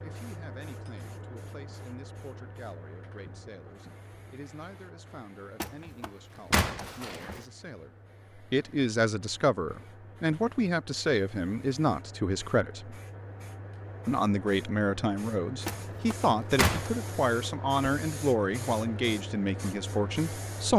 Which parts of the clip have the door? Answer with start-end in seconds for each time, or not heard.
5.6-7.5, 15.7-16.9.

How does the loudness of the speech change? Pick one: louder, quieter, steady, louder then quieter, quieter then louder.
louder.